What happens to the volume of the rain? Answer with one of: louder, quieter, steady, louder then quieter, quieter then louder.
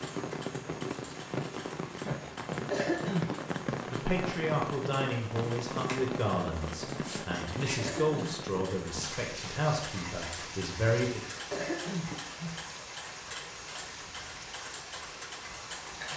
quieter.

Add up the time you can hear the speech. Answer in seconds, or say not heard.
7 s.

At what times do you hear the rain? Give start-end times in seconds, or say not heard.
0.0-16.1.